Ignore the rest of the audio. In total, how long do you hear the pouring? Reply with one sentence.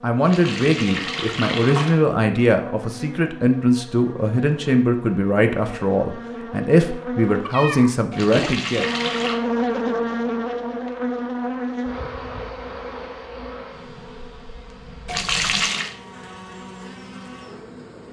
You can hear the pouring for 4 seconds altogether.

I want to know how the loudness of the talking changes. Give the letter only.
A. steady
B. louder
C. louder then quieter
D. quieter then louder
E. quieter
A.